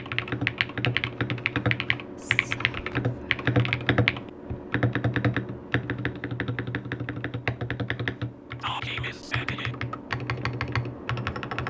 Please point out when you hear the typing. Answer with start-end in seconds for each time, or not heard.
0.0-11.6.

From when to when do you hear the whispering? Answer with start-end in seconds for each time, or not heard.
2.1-3.5, 8.6-9.8.